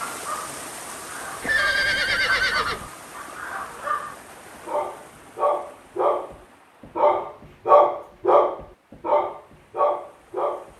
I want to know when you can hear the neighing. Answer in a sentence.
The neighing can be heard from 1.4 to 2.9 s.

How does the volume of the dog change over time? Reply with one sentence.
The loudness of the dog goes up, then down.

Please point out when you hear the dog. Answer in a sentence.
You can hear the dog from 0.0 to 6.3 s and from 7.0 to 10.7 s.